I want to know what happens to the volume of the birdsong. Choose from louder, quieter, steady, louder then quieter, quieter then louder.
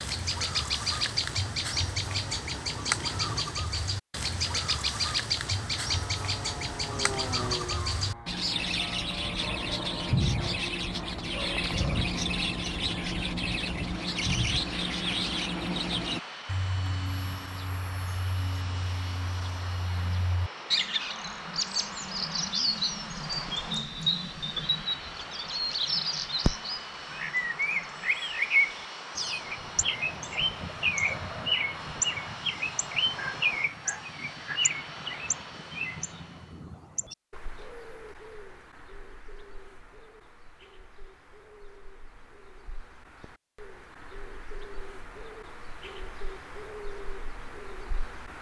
quieter.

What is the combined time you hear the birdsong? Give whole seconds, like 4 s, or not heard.
48 s.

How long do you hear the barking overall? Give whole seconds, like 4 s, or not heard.
4 s.